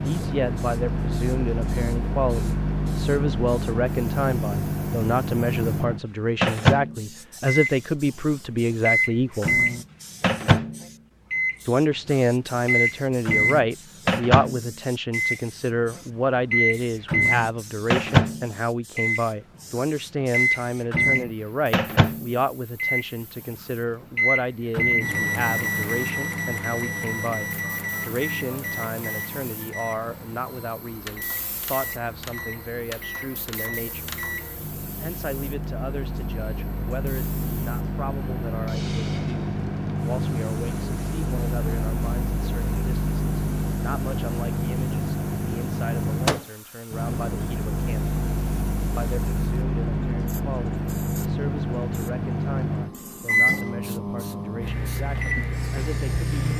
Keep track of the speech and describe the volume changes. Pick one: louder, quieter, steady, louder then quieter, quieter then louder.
quieter.